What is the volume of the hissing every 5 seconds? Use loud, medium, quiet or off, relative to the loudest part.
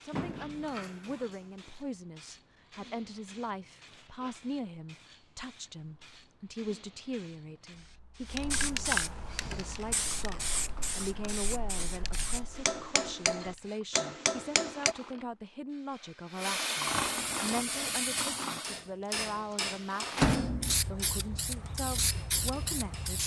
quiet, loud, medium, loud, loud.